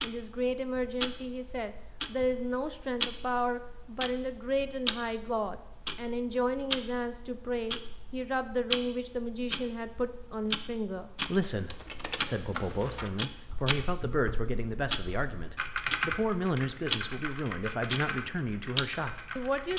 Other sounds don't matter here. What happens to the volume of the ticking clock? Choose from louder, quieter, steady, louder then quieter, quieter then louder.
steady.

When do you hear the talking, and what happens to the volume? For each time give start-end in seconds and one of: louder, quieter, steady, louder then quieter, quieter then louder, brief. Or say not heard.
0.0-19.7 steady.